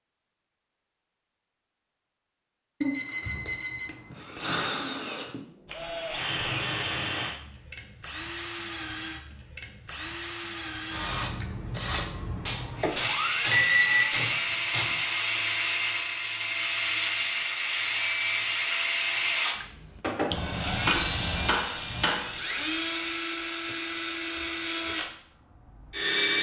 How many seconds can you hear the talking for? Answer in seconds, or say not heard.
not heard.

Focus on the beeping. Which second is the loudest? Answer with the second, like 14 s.
14 s.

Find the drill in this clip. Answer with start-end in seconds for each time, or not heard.
3.2-26.3.